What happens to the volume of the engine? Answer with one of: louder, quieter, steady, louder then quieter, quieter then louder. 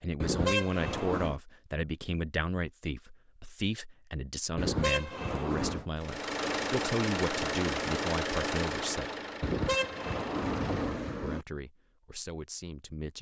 quieter.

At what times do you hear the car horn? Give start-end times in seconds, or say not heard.
0.2-1.4, 4.5-5.8, 9.4-11.4.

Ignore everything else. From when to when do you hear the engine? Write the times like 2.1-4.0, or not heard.
6.0-10.9.